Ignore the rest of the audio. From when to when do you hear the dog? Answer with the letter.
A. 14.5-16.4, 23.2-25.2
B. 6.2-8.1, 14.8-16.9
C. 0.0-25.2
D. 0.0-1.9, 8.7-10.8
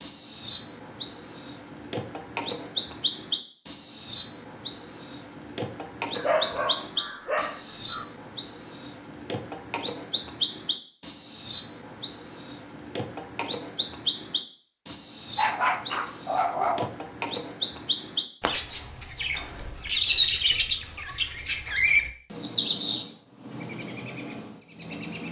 B.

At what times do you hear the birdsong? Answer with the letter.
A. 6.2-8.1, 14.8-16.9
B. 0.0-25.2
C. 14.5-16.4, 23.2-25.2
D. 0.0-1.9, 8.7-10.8
B.